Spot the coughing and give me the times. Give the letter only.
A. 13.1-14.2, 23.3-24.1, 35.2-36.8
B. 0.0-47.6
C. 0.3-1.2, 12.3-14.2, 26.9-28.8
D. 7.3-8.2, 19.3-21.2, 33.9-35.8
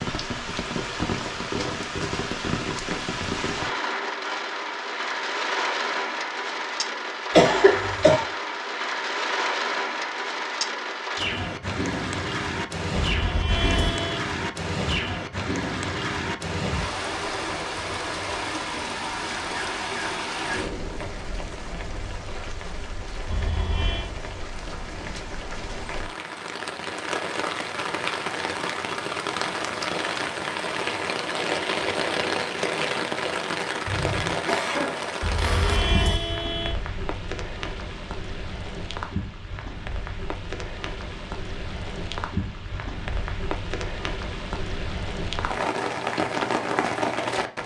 D.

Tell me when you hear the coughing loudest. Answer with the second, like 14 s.
8 s.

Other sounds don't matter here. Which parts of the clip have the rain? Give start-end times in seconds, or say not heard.
0.0-47.6.